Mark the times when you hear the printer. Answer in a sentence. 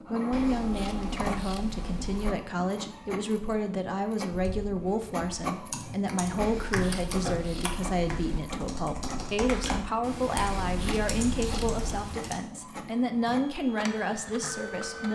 You can hear the printer from 0.0 to 15.1 s.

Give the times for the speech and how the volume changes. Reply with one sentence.
You can hear the speech from 0.1 to 15.1 s, at a steady volume.